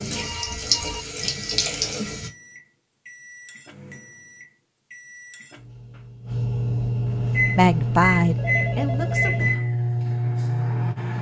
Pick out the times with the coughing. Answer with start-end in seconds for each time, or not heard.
not heard.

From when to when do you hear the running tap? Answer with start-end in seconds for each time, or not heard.
0.0-2.3.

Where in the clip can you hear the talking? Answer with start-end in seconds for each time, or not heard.
7.5-9.4.